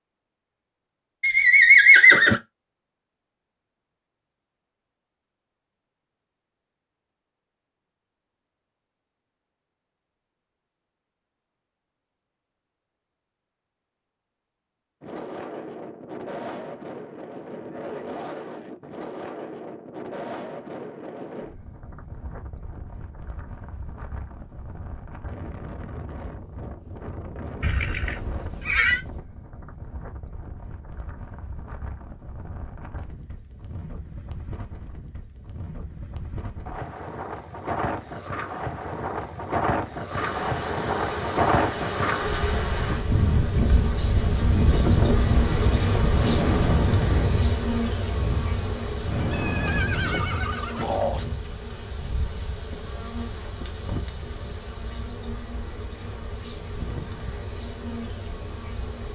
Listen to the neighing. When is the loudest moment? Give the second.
2 s.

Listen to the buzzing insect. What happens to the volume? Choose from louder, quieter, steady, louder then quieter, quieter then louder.
quieter.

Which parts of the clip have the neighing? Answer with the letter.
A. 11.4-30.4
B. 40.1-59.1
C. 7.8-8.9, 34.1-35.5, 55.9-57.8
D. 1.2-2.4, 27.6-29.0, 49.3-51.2
D.